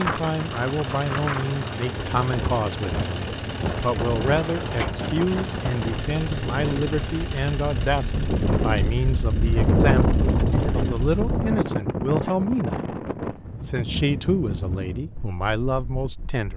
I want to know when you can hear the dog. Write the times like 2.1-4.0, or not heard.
not heard.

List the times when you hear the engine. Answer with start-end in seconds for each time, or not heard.
0.0-11.4.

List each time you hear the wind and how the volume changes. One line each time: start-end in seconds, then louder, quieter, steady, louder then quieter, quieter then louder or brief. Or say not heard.
0.0-16.5 louder then quieter.